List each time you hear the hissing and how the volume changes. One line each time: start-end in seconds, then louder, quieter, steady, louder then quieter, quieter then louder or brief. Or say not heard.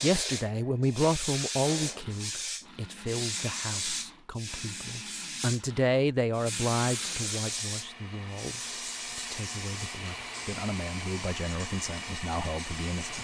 0.0-13.1 quieter.